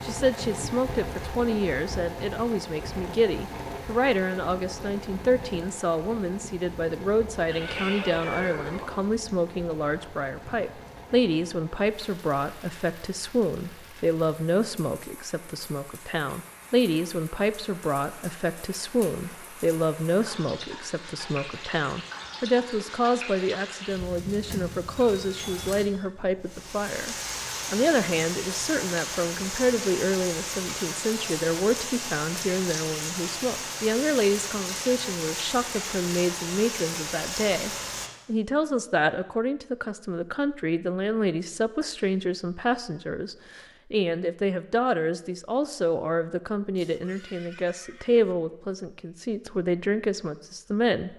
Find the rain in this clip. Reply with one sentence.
The rain can be heard from 0.0 to 38.1 s.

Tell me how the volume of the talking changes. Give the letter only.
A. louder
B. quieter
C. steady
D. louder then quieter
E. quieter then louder
C.